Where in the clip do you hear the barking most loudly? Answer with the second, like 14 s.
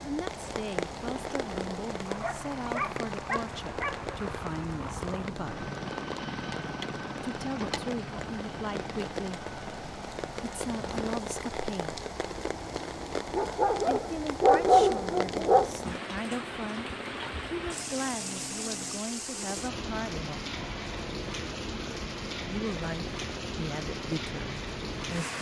15 s.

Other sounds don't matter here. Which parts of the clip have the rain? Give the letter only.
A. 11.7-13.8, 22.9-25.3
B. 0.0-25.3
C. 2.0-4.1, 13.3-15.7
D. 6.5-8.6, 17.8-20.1
B.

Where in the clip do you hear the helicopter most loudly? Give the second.
6 s.